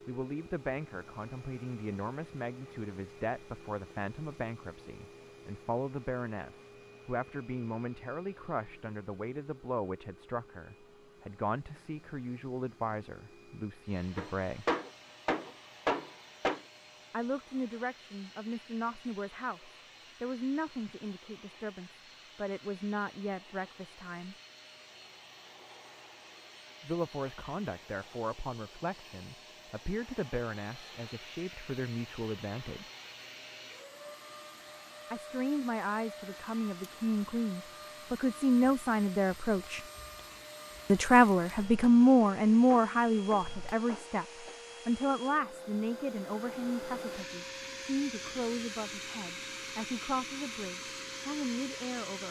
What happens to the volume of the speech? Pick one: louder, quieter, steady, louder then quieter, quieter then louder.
louder then quieter.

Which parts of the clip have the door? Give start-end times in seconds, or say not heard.
not heard.